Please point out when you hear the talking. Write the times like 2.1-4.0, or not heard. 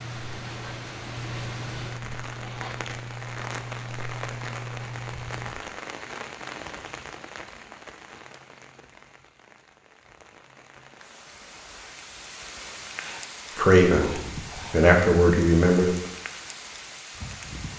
13.6-15.9.